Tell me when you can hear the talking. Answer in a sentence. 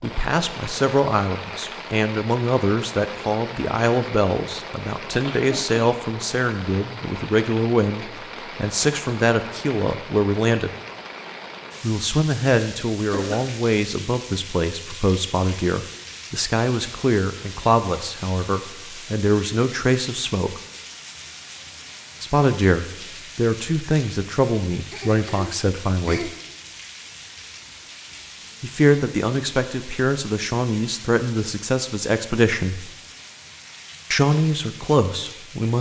The talking can be heard from 0.0 to 10.7 s, from 11.8 to 20.6 s, from 22.2 to 26.3 s, from 28.6 to 32.9 s and from 34.1 to 35.7 s.